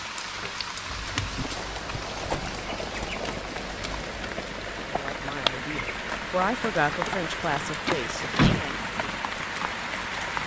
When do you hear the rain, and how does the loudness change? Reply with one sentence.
You can hear the rain from 0.0 to 10.4 s, at a steady volume.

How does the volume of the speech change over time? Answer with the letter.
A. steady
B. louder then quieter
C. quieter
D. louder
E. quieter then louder
B.